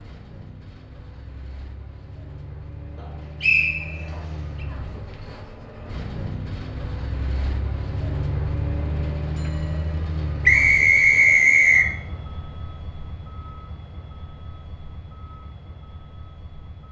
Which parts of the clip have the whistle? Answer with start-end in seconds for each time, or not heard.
3.4-4.2, 10.4-11.9.